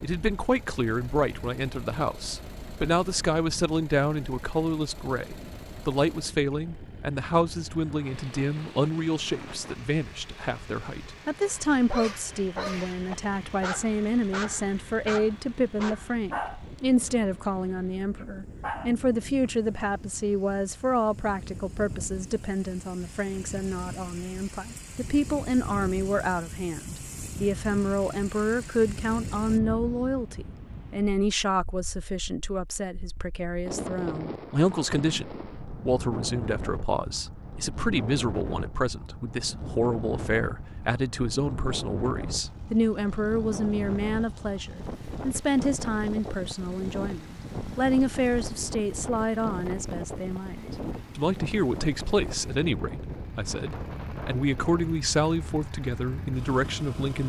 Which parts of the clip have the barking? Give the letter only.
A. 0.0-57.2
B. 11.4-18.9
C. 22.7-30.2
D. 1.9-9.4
B.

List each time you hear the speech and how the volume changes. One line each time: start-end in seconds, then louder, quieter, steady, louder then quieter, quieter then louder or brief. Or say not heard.
0.0-57.2 steady.